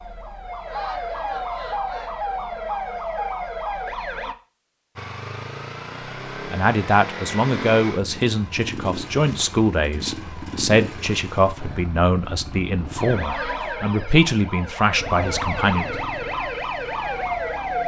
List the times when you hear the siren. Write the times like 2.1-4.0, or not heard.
0.0-4.3, 12.9-17.8.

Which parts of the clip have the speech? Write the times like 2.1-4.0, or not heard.
6.5-15.9.